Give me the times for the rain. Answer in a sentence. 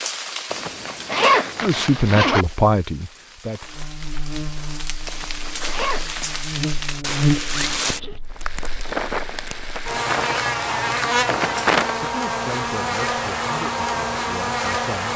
The rain can be heard from 0.0 to 12.1 s.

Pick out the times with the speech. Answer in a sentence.
The speech can be heard from 1.6 to 3.8 s and from 11.9 to 15.1 s.